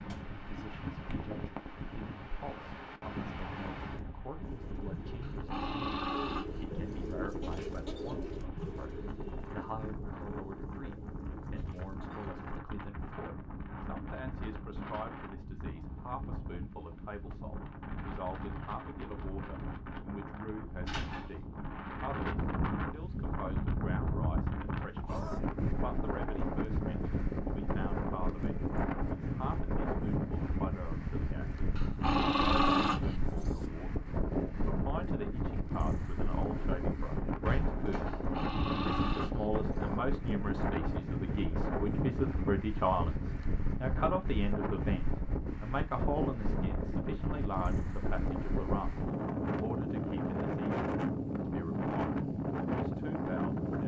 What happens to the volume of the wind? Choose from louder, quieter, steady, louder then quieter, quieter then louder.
louder.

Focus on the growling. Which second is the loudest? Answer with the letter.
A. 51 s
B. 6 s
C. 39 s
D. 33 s
D.